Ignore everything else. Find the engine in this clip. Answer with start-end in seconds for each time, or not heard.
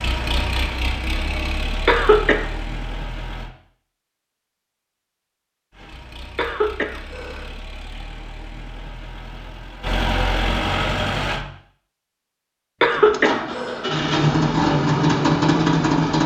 0.0-3.5, 5.7-11.4, 12.9-16.2.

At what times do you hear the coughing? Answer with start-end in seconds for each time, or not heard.
1.9-2.5, 6.3-7.5, 12.8-13.8.